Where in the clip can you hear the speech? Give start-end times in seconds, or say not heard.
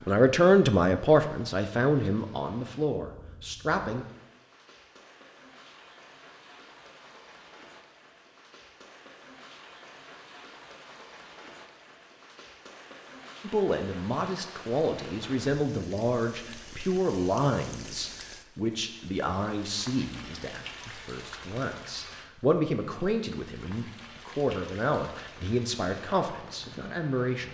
0.1-4.0, 13.4-27.4.